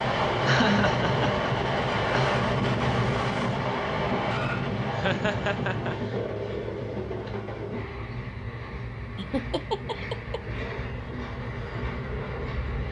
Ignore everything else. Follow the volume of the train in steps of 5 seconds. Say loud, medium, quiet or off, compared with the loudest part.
loud, medium, medium.